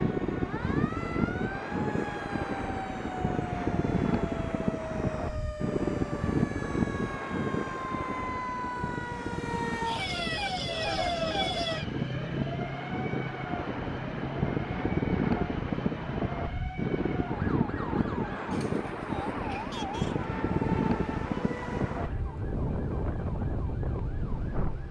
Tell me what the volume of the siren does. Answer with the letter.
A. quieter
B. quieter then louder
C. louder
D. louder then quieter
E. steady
D.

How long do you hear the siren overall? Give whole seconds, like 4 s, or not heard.
25 s.